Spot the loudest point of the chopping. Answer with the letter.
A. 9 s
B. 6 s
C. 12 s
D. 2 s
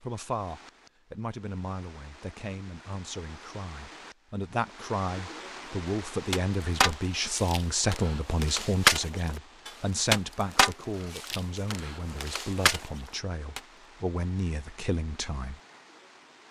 A.